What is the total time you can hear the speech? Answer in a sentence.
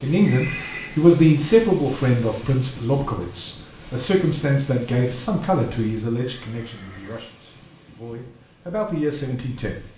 You can hear the speech for 10 seconds altogether.